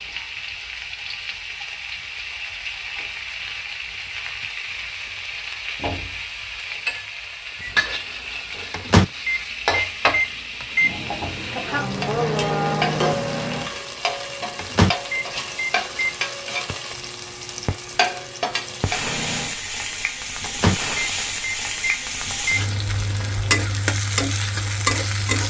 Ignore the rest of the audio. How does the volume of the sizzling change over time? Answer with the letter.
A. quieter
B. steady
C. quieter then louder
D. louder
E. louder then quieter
D.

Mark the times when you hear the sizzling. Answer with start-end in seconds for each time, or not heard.
0.0-25.4.